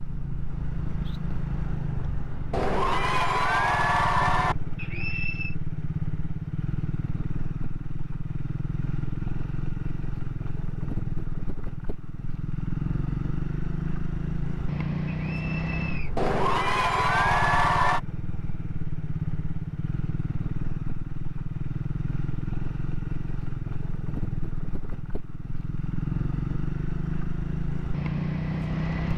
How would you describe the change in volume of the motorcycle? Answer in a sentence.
The volume of the motorcycle stays about the same.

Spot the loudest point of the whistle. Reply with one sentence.
The loudest moment of the whistle is at 5 seconds.